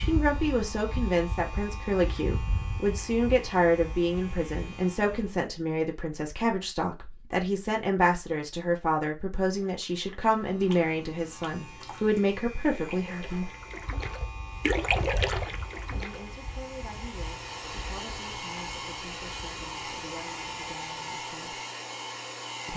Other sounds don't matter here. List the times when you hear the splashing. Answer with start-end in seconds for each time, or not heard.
9.5-16.2.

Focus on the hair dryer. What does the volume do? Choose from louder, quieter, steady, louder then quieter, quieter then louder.
louder.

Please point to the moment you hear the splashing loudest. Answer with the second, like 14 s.
15 s.